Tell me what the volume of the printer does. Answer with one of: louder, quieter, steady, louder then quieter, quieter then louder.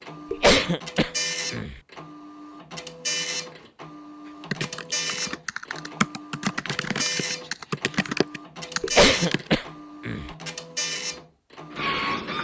steady.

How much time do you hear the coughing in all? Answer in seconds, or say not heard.
3 s.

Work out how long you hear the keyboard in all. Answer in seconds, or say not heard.
5 s.